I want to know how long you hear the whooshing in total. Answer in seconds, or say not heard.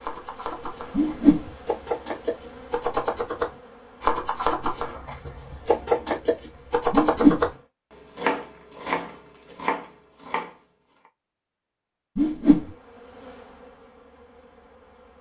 2 s.